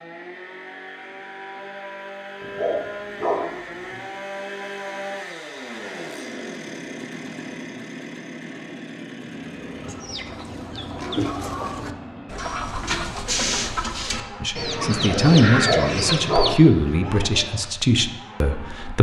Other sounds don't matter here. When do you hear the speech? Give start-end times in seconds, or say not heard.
14.4-18.9.